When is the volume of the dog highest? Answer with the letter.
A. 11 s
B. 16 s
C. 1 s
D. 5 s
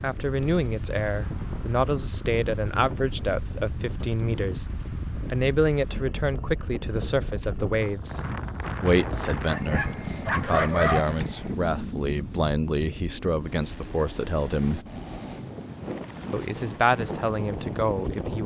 A.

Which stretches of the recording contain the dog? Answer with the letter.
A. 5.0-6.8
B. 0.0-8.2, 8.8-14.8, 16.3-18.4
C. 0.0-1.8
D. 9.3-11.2
D.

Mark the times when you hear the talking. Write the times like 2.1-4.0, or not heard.
0.0-8.2, 8.8-14.8, 16.3-18.4.